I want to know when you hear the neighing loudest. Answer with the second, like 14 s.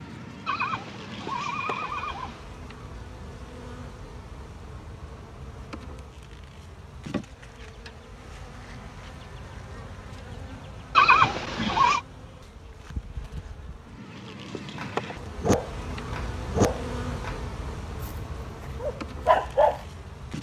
11 s.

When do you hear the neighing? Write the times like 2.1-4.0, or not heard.
0.5-2.5, 10.9-12.0.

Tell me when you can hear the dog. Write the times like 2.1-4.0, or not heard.
14.8-17.4, 18.0-19.9.